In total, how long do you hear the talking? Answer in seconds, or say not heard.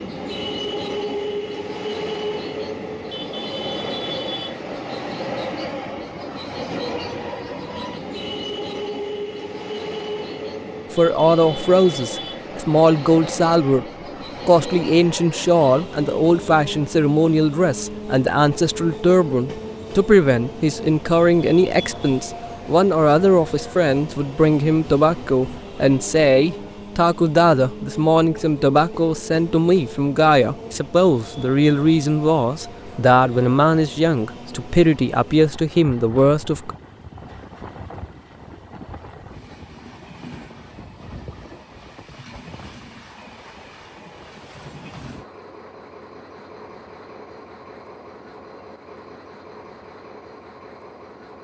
25 s.